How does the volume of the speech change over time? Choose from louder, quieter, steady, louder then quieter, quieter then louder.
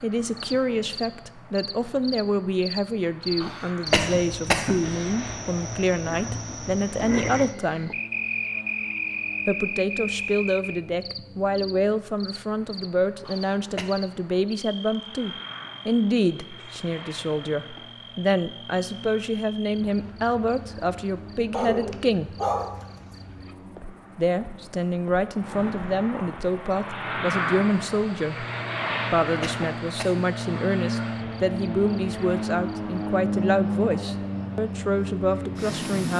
steady.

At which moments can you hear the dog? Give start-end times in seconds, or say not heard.
21.5-23.1.